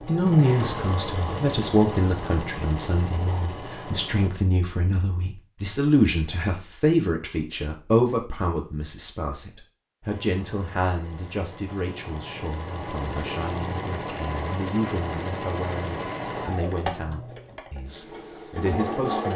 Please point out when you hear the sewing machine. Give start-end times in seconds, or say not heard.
0.0-4.3, 10.1-19.3.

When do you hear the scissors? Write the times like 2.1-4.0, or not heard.
not heard.